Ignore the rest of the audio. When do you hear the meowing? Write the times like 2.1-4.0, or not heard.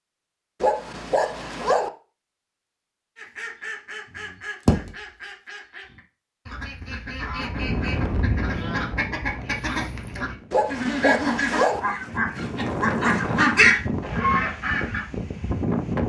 not heard.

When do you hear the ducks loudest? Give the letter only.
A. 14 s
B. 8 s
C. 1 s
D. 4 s
A.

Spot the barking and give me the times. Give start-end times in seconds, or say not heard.
0.6-1.9, 10.5-11.8.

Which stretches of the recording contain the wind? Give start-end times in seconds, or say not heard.
7.4-16.0.